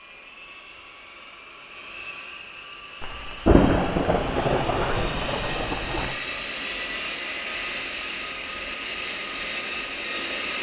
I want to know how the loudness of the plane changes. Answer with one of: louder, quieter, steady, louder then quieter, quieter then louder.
louder.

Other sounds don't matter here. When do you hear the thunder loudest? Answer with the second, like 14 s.
4 s.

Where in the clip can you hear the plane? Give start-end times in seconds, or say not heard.
0.0-10.5.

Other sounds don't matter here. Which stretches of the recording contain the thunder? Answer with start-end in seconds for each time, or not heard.
3.0-6.2.